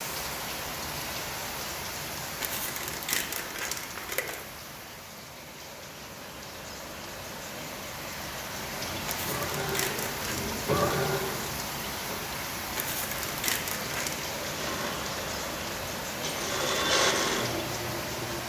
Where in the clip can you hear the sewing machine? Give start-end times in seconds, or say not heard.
8.5-12.2, 14.4-18.4.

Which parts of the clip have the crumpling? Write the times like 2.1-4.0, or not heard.
2.4-4.4, 9.1-10.5, 12.8-14.2.